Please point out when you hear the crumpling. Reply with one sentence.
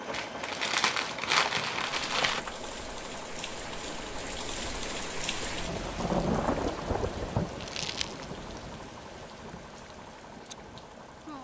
You can hear the crumpling from 0.1 to 2.5 s and from 7.6 to 8.2 s.